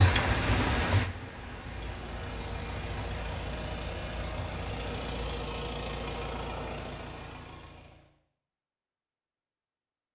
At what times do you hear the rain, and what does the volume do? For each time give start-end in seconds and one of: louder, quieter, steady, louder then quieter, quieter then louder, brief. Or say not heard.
0.0-5.4 quieter.